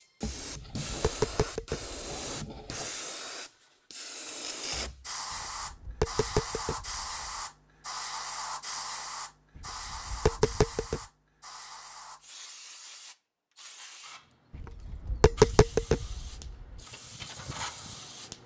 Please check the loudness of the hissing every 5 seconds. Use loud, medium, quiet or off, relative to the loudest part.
loud, loud, medium, medium.